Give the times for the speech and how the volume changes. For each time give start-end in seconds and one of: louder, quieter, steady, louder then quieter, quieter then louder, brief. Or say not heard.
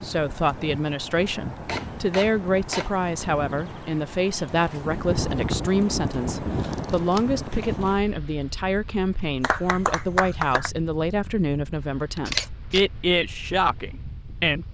0.0-14.6 steady.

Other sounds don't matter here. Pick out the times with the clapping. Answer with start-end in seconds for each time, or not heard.
9.4-10.7.